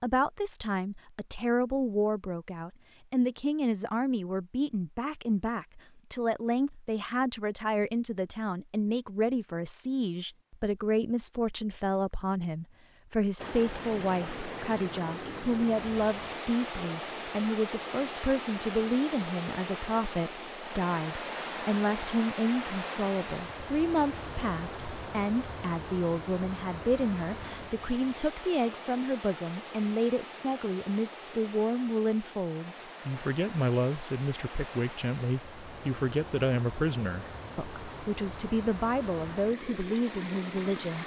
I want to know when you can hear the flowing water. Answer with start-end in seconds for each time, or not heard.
13.3-41.0.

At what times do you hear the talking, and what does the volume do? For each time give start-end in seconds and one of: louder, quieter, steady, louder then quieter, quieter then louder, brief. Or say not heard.
0.0-41.0 steady.